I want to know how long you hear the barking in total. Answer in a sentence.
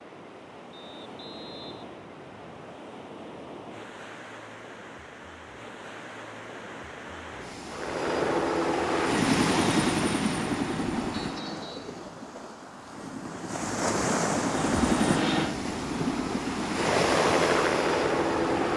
You can't hear the barking here.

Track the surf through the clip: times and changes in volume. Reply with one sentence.
You can hear the surf from 0.0 to 18.7 s, getting louder.